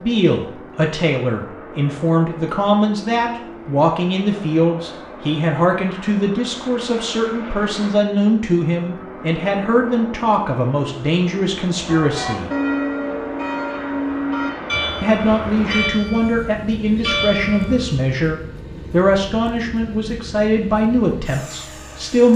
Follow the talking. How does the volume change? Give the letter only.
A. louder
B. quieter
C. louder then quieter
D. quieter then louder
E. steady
E.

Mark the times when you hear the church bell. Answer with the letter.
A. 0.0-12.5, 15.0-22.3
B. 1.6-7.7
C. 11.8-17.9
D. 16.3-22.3
C.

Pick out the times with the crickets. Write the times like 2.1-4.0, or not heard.
not heard.